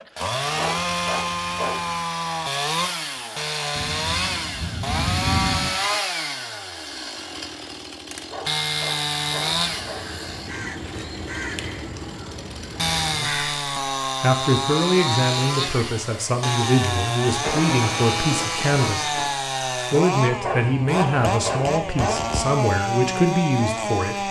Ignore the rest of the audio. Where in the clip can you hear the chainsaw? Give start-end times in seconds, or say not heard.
0.0-24.2.